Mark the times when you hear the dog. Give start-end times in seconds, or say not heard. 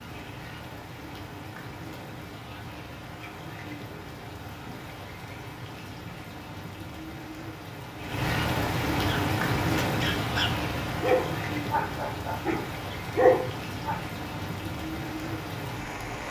9.1-14.0.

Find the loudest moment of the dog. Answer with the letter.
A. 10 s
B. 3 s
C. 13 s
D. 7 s
C.